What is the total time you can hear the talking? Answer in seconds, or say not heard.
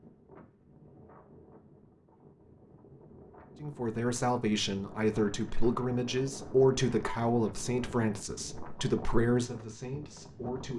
7 s.